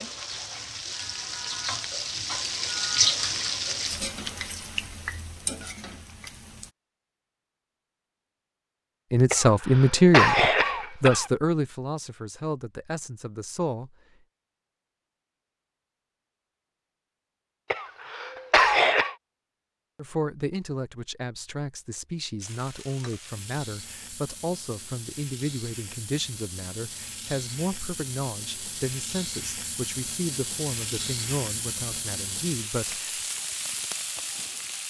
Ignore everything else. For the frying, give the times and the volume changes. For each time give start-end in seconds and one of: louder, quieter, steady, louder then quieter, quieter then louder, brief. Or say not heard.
0.0-6.7 louder then quieter
22.4-34.8 louder.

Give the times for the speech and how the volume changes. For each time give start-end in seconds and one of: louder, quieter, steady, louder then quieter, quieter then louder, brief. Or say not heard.
9.1-13.9 quieter
19.9-33.3 steady.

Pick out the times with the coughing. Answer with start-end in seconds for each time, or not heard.
9.3-11.3, 17.7-19.1.